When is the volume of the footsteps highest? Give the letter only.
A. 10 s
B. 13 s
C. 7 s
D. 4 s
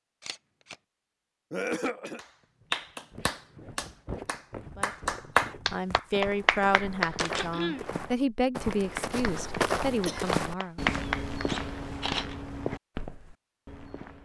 A.